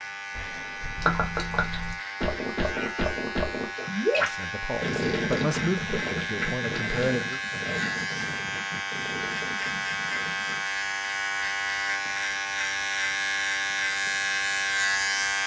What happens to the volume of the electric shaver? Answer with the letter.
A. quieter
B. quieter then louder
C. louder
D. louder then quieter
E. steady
C.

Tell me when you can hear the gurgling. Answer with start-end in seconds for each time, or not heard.
0.9-10.6.